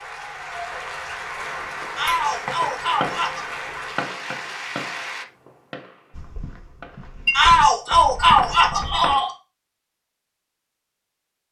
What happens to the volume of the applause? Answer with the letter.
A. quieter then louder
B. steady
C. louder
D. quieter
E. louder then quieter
B.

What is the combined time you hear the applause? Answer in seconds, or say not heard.
5 s.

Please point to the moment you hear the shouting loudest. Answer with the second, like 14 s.
8 s.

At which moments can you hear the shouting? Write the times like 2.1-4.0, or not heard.
1.9-3.5, 7.3-9.3.